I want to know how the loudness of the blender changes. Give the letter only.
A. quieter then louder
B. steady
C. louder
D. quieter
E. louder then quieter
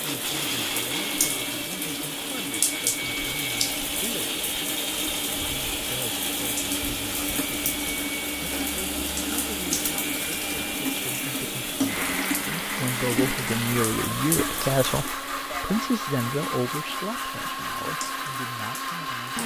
B.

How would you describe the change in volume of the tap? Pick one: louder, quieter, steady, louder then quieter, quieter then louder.
quieter.